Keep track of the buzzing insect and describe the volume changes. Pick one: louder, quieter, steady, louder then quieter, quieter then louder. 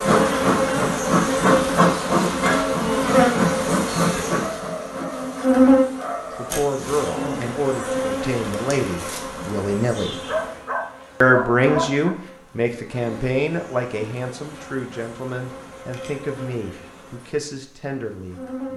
quieter.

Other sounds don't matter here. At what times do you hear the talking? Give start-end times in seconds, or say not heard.
6.3-10.2, 11.2-18.7.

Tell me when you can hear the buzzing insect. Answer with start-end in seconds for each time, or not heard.
0.0-18.7.